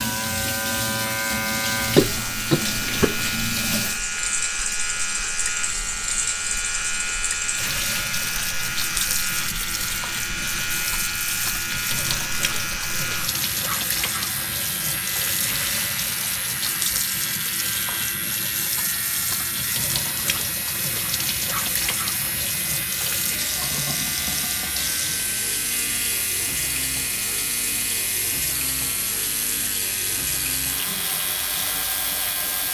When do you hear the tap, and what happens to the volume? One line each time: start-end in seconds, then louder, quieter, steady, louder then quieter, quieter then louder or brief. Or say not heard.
0.0-32.7 steady.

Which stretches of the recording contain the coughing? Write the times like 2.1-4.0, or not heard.
1.8-3.3.